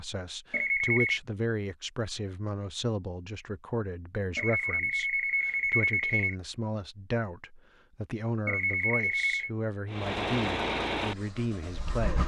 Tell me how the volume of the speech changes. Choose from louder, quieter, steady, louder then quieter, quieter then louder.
steady.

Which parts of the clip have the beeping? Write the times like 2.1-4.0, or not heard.
0.5-1.2, 4.3-6.3, 8.4-9.5.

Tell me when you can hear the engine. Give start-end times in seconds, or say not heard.
9.9-12.2.